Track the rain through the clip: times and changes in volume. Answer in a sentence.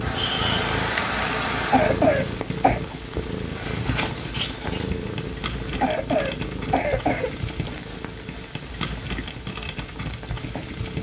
The rain can be heard from 0.0 to 10.9 s, getting quieter.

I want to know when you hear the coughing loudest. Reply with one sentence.
The volume of the coughing peaks at 2 seconds.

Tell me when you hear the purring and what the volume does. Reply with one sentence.
You can hear the purring from 0.0 to 10.9 s, getting quieter.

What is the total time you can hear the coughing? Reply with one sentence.
The coughing can be heard for 3 seconds in total.